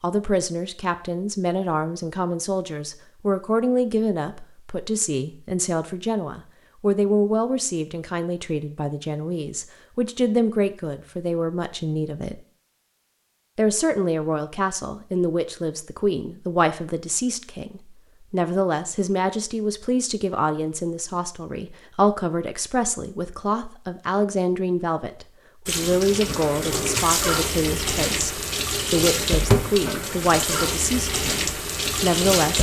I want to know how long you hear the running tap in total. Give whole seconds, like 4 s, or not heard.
7 s.